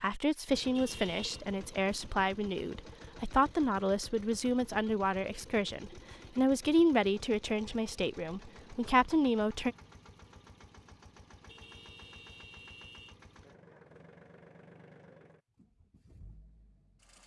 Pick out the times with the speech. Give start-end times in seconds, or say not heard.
0.0-9.8.